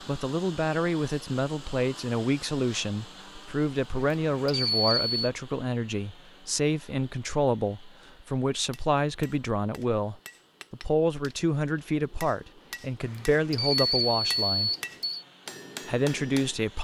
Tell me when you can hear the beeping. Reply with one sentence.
You can hear the beeping from 4.0 to 5.3 s and from 13.0 to 15.2 s.